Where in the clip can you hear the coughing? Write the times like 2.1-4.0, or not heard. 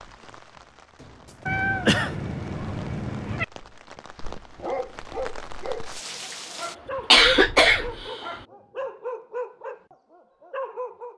1.0-2.1, 6.6-8.4.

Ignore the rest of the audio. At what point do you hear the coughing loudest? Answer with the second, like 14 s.
7 s.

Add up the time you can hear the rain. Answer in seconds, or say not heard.
7 s.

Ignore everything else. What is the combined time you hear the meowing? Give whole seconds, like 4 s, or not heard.
3 s.